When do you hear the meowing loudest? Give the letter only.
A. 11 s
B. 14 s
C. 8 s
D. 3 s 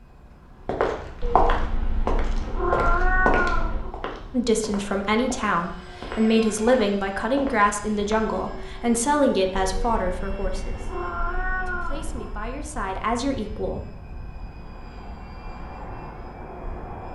D.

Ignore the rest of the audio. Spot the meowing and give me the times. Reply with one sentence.
You can hear the meowing from 1.2 to 3.9 s and from 9.6 to 12.3 s.